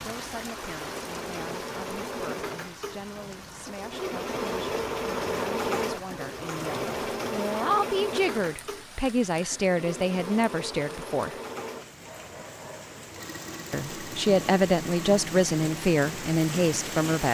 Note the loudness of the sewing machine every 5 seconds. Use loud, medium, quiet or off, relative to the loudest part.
loud, loud, medium, medium.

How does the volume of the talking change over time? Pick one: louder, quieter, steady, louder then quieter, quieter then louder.
louder.